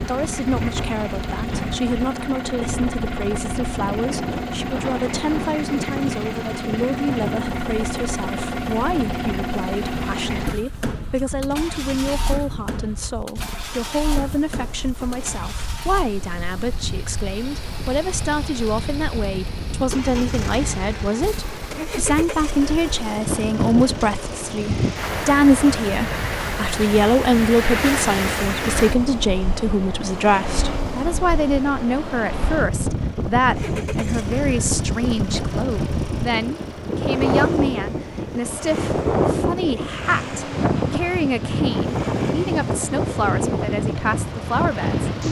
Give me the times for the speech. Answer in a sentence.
The speech can be heard from 0.0 to 45.2 s.